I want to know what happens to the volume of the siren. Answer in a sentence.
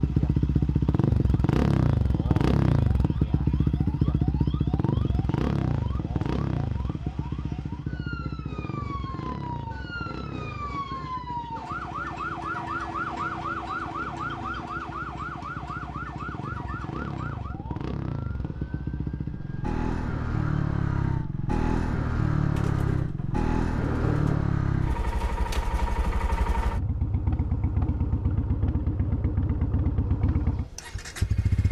The volume of the siren goes up, then down.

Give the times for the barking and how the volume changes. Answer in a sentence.
You can't hear the barking here.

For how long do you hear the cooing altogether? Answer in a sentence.
The cooing can be heard for 2 seconds in total.